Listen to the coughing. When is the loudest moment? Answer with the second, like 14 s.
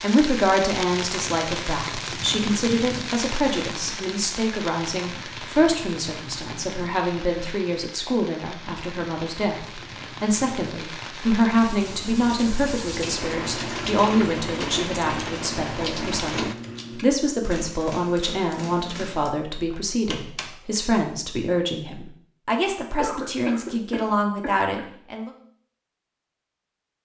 23 s.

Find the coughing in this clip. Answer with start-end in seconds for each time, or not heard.
23.0-24.9.